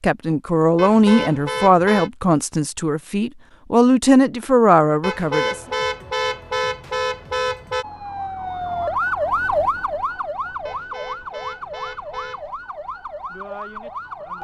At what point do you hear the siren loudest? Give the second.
9 s.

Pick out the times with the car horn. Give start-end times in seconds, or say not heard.
0.8-2.1, 5.0-7.8, 10.7-12.5.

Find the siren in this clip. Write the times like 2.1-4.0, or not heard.
7.8-14.3.